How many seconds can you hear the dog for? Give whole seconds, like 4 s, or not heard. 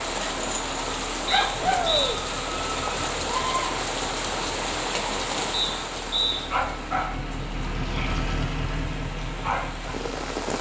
not heard.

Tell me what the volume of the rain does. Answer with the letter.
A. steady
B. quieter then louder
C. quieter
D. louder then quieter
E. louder
C.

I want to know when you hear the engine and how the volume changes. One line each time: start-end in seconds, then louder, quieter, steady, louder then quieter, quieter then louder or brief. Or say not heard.
0.0-10.5 louder.